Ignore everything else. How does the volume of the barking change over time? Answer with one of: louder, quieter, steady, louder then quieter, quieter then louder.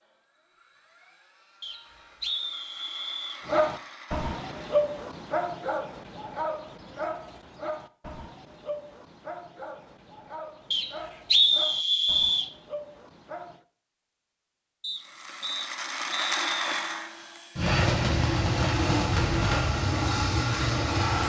quieter.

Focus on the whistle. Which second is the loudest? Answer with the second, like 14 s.
11 s.